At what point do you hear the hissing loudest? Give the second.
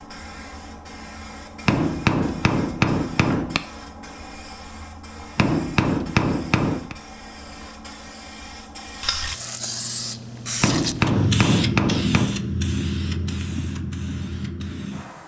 12 s.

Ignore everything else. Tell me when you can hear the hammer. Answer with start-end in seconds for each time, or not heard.
1.6-3.6, 5.3-7.0, 10.6-12.3.